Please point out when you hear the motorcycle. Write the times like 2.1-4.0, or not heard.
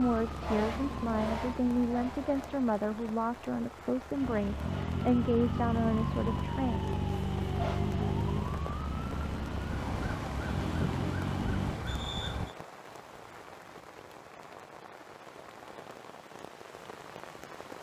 4.1-11.8.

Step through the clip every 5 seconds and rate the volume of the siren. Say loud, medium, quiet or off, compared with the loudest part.
loud, loud, loud, off.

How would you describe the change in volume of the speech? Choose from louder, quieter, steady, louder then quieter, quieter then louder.
steady.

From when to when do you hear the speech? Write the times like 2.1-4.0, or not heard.
0.0-6.8.